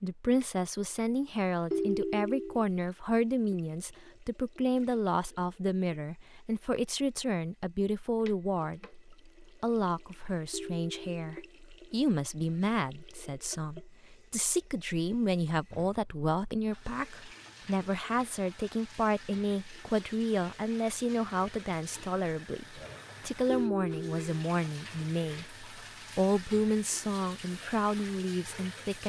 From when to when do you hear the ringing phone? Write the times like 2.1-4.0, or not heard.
1.7-2.6, 10.5-11.5, 23.4-24.2.